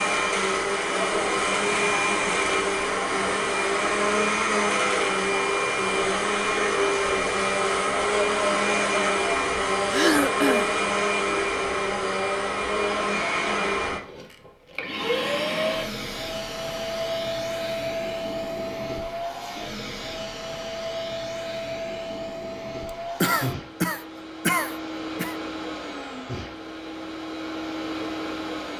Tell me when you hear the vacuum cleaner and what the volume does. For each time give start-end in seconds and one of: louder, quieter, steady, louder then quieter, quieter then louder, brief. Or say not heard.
0.0-28.7 quieter.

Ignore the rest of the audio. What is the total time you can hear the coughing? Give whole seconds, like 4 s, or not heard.
3 s.